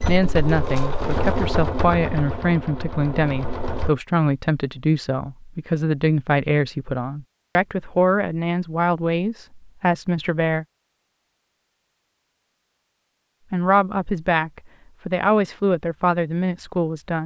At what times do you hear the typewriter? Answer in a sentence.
The typewriter can't be heard in this clip.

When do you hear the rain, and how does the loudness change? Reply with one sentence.
The rain can't be heard in this clip.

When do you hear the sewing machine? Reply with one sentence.
You can hear the sewing machine from 0.0 to 4.0 s.